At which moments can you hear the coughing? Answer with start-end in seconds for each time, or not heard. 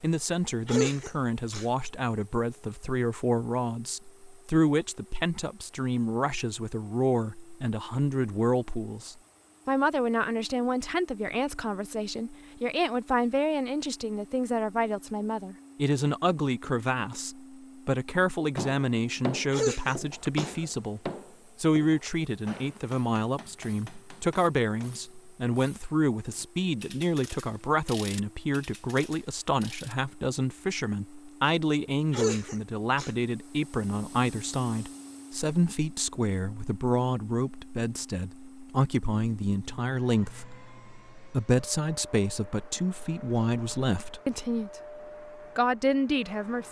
0.7-1.6, 19.5-20.6, 32.1-33.1.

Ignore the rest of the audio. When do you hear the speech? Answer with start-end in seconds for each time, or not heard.
0.0-44.8, 45.5-46.6.